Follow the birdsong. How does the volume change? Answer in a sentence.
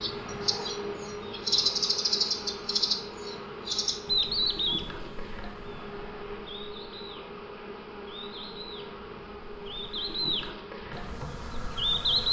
The loudness of the birdsong goes down, then up.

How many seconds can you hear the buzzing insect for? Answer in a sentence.
The buzzing insect can be heard for 12 seconds in total.